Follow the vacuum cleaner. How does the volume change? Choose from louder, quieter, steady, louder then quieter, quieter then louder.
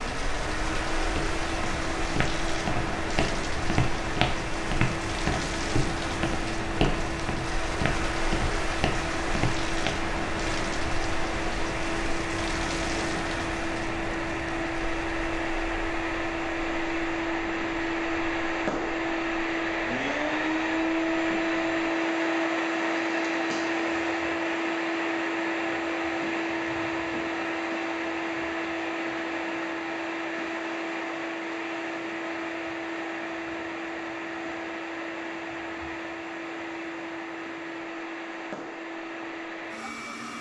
louder then quieter.